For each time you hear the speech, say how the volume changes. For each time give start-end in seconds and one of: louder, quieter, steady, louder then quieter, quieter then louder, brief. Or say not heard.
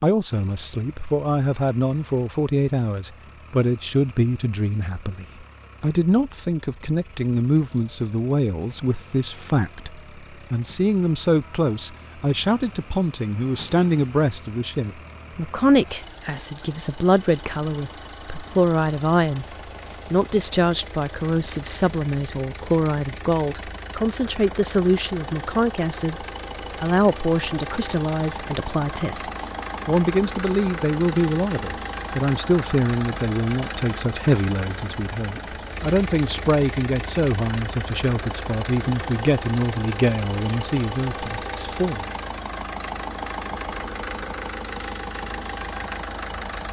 0.0-42.1 steady.